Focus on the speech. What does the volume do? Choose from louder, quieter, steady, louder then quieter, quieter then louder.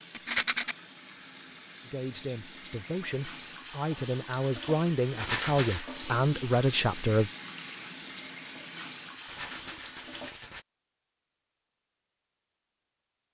louder.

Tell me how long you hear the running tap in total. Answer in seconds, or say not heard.
10 s.